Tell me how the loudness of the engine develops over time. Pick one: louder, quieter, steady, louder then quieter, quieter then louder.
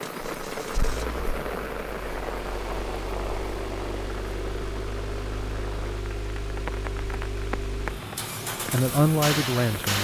louder.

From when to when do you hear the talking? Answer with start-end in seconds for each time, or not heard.
8.7-10.0.